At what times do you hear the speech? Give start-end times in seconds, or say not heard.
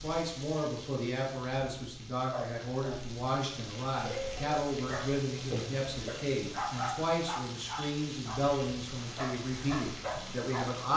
0.0-10.9.